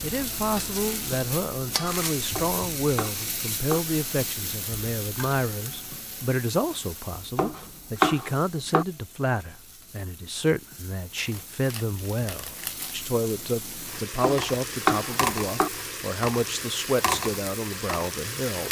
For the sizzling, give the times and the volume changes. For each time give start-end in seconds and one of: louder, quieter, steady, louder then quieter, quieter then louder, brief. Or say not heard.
0.0-18.6 quieter then louder.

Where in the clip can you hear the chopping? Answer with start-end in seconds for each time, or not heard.
2.4-3.8, 7.3-8.8, 14.2-15.7.